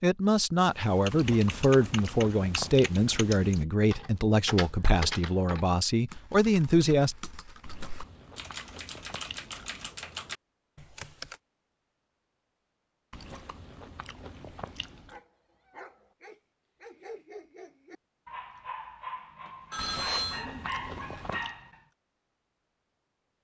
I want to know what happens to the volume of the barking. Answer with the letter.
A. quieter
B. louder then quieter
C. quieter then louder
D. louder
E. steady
D.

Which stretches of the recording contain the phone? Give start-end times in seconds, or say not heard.
19.7-20.4.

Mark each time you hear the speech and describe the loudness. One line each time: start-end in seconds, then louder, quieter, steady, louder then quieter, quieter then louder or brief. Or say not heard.
0.0-7.2 steady.